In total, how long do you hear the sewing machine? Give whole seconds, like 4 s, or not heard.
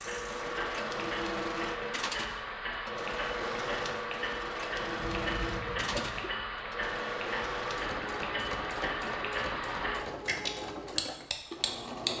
12 s.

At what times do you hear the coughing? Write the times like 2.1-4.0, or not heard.
5.0-6.3.